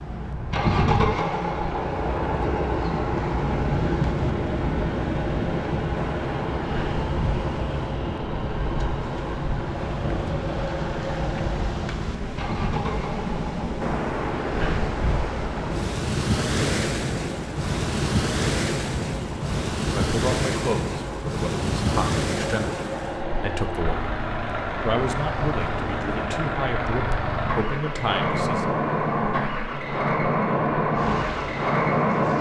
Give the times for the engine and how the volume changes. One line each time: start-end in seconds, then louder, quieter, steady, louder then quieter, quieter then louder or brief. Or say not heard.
0.0-32.3 quieter then louder.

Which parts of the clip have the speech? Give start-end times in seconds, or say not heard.
19.9-24.1, 24.8-28.6.